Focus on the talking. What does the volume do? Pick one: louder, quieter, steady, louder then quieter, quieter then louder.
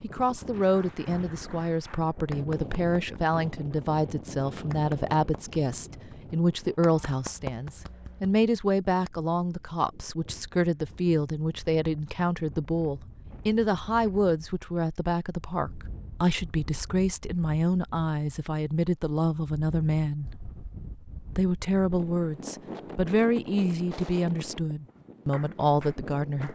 steady.